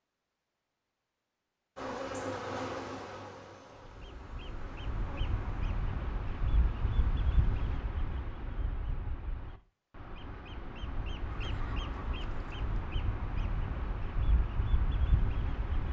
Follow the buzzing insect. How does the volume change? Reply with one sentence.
The volume of the buzzing insect goes down.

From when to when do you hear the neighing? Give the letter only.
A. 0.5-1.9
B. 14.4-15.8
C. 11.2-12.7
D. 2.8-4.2
C.